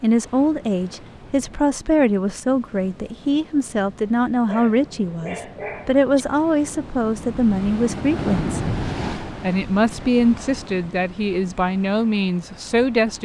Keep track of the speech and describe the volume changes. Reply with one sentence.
The volume of the speech stays about the same.